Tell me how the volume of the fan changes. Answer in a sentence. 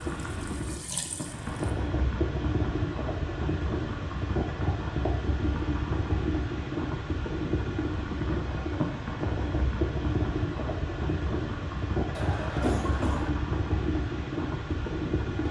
The volume of the fan stays about the same.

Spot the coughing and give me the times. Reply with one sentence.
You can hear the coughing from 12.2 to 13.3 s.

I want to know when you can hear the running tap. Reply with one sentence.
You can hear the running tap from 0.0 to 1.8 s.